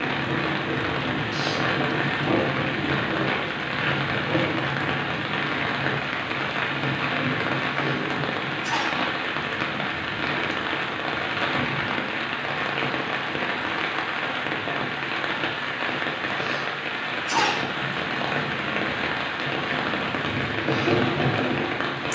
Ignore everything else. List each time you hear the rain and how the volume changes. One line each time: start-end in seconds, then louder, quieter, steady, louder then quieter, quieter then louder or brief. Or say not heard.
0.0-22.1 steady.